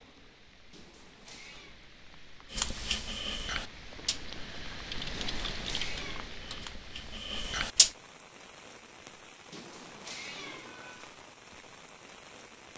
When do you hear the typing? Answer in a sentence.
The typing can be heard from 2.5 to 7.9 s.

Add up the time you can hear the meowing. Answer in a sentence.
You can hear the meowing for 4 seconds altogether.